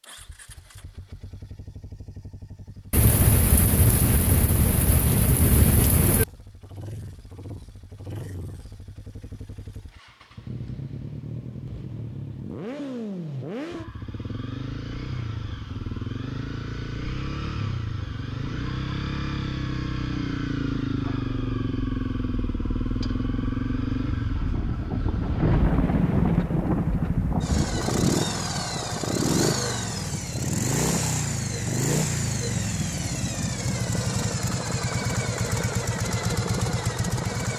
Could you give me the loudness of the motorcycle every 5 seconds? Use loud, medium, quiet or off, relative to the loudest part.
quiet, quiet, medium, medium, loud, loud, loud, loud.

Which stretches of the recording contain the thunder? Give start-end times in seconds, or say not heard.
2.9-6.2, 24.5-28.1.